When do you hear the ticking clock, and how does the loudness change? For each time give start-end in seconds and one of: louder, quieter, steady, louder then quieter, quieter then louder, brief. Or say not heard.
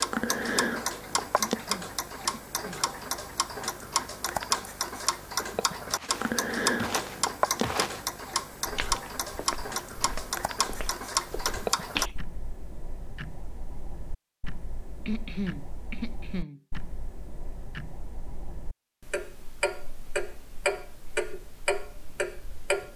0.0-22.9 quieter then louder.